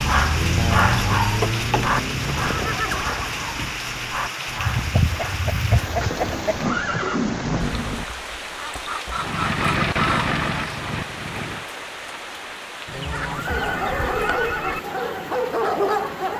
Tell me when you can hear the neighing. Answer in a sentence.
The neighing can be heard from 1.8 to 3.8 s, from 6.5 to 8.1 s and from 13.2 to 14.8 s.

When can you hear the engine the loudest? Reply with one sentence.
The loudest moment of the engine is at 10 seconds.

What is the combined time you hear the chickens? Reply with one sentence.
The chickens can be heard for 7 seconds in total.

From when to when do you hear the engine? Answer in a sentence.
The engine can be heard from 0.0 to 2.5 s and from 9.2 to 11.7 s.